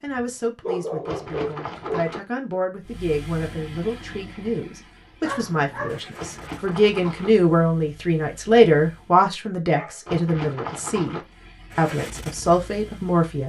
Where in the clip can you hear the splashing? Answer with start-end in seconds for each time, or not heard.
1.1-2.2, 6.2-7.3, 10.1-11.2.